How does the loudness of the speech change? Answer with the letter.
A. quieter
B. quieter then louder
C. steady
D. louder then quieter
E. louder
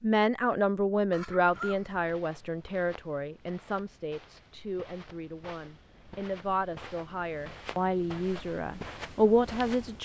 B.